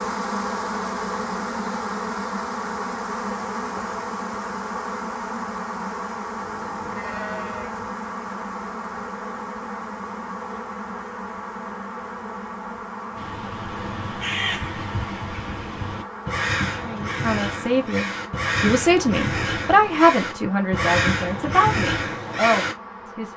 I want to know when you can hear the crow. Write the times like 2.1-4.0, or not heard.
13.2-22.8.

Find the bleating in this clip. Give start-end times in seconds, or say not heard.
6.4-8.0.